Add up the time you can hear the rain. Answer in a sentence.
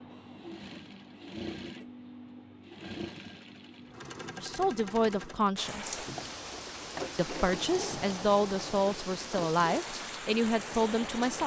You can hear the rain for 6 seconds altogether.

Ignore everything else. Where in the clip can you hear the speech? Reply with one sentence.
You can hear the speech from 4.3 to 6.0 s and from 7.2 to 11.4 s.